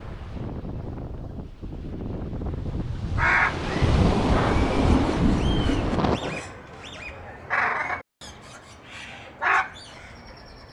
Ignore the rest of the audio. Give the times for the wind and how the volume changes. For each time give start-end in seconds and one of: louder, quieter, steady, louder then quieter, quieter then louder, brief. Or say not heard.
0.0-6.4 louder.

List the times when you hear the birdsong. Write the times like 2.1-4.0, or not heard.
3.1-10.6.